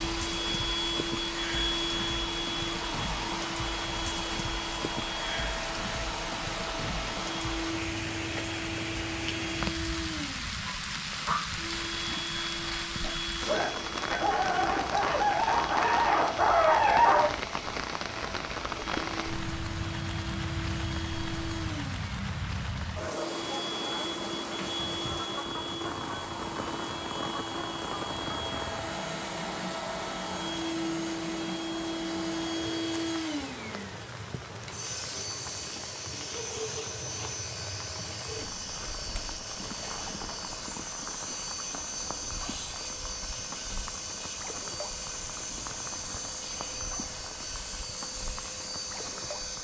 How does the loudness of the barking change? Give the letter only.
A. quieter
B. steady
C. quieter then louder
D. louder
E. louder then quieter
C.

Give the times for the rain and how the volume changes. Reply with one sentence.
The rain can be heard from 0.0 to 49.6 s, getting quieter.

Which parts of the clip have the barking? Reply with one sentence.
You can hear the barking from 10.6 to 17.3 s.